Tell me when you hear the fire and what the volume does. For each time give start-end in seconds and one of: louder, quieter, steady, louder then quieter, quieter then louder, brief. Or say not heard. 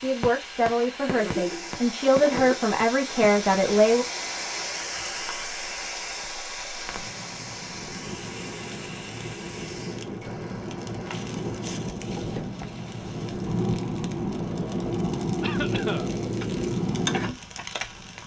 0.0-18.2 quieter then louder.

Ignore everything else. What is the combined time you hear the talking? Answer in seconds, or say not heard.
4 s.